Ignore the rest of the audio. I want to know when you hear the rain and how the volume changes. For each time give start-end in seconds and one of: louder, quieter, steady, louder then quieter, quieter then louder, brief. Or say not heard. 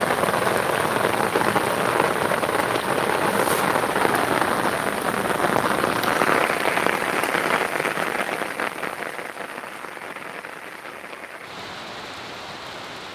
0.0-13.1 quieter.